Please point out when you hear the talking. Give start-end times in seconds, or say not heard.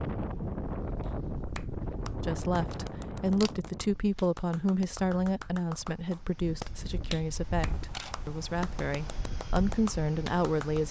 2.2-10.8.